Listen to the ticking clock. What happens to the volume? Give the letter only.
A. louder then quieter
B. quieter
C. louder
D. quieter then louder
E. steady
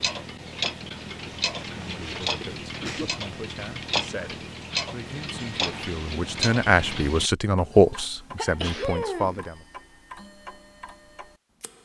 B.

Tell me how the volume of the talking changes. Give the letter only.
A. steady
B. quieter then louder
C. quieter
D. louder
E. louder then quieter
D.